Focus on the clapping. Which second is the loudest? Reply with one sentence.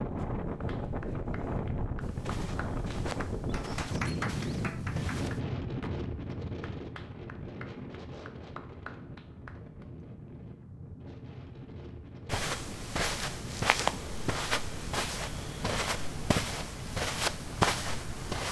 The loudest moment of the clapping is at 4 seconds.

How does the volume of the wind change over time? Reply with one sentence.
The loudness of the wind goes down.